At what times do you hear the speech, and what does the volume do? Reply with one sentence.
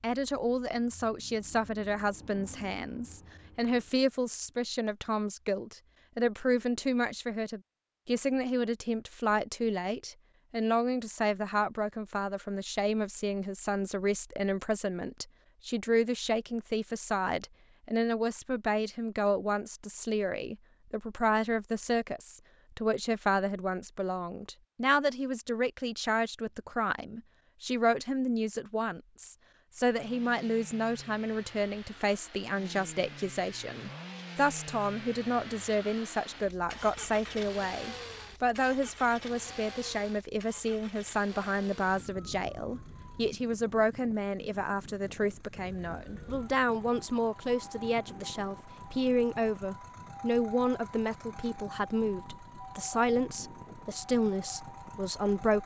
The speech can be heard from 0.0 to 55.6 s, at a steady volume.